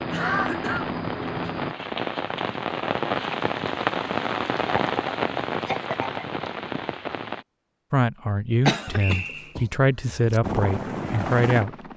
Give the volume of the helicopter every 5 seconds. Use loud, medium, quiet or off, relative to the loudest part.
loud, off, loud.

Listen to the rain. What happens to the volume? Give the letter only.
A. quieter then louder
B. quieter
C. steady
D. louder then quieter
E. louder
D.